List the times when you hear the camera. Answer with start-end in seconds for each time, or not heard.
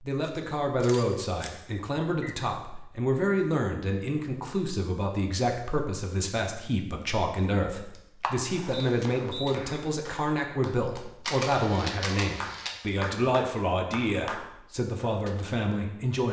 0.2-1.6, 8.0-8.8, 11.2-12.8.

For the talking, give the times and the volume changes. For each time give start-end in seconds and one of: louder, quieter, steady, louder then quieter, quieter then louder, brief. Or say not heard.
0.0-16.2 steady.